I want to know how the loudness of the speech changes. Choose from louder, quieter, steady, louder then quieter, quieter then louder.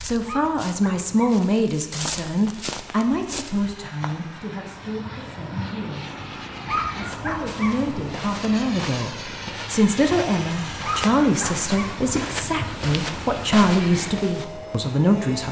quieter then louder.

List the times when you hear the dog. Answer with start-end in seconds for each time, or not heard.
0.2-1.4, 6.7-7.8, 10.8-11.9.